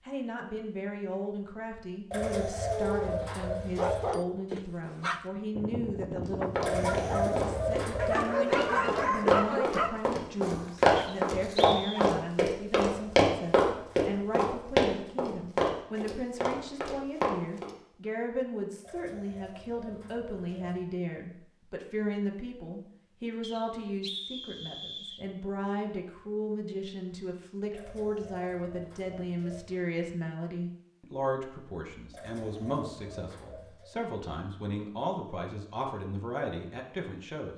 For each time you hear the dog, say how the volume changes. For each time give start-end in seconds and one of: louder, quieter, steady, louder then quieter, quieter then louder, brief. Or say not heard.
2.5-12.1 louder then quieter.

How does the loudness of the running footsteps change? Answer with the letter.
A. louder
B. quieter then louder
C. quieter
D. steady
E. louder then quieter
E.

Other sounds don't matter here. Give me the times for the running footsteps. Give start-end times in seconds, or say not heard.
6.2-17.7.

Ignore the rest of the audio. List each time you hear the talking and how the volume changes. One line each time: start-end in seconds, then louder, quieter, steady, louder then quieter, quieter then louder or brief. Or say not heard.
0.1-37.5 steady.